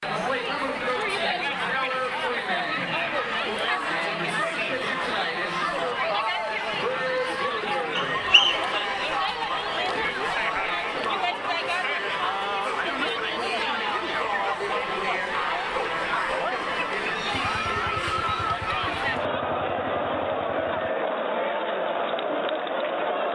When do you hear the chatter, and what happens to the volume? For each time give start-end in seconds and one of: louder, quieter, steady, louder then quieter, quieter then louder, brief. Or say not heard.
0.0-23.3 steady.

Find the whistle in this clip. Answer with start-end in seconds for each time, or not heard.
8.0-8.7.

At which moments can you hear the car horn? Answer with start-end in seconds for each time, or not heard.
not heard.